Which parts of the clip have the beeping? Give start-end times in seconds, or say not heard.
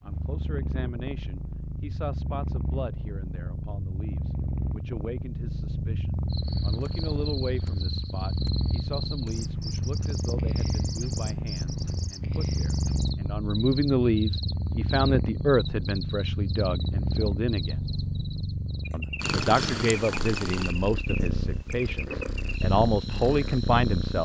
not heard.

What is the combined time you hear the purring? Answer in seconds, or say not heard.
24 s.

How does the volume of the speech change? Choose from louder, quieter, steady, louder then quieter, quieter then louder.
louder.